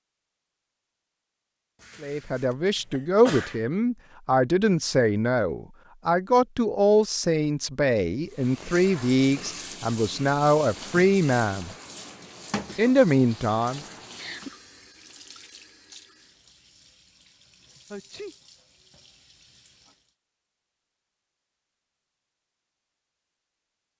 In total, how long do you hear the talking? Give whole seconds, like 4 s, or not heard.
11 s.